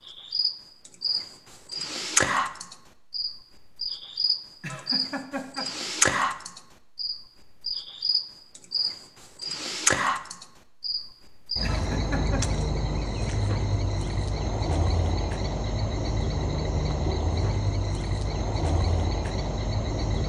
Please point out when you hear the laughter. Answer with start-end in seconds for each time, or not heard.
4.6-5.7, 11.6-12.4.